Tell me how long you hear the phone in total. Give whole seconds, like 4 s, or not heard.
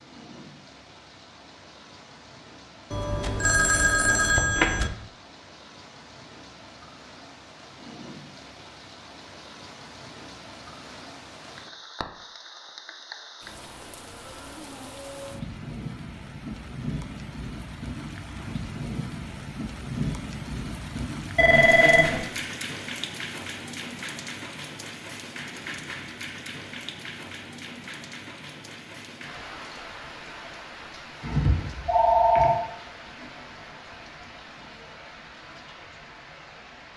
4 s.